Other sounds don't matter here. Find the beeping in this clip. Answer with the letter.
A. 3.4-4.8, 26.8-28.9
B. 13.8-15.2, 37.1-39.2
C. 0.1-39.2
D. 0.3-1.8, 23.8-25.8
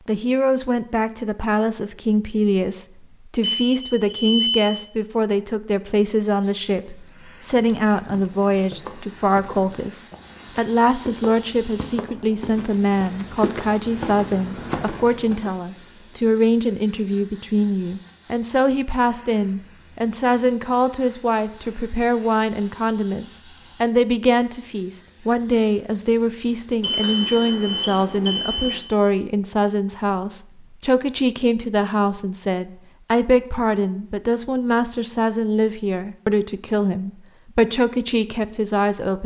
A.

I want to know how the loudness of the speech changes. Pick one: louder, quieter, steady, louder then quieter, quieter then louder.
steady.